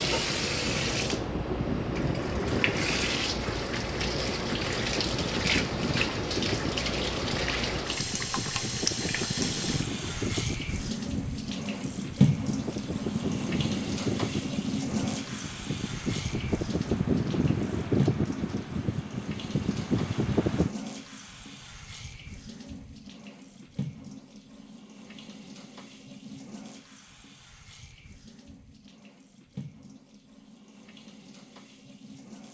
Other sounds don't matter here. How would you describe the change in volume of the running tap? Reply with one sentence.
The loudness of the running tap goes down.